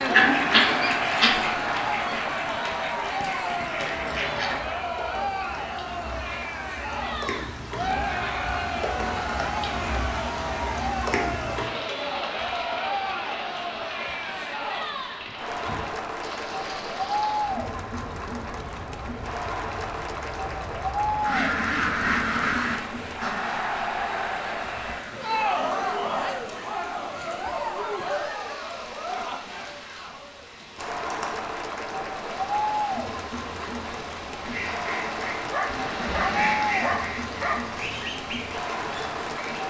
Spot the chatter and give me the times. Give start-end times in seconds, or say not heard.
0.0-39.6.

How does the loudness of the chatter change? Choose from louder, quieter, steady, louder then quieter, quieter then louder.
steady.